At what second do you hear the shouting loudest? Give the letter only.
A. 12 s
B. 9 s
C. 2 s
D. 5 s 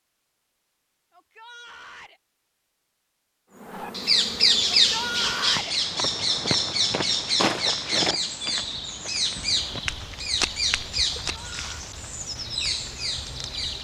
D.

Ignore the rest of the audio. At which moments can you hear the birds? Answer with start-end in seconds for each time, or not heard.
3.7-13.7.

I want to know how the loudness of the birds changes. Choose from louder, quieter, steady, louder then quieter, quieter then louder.
quieter.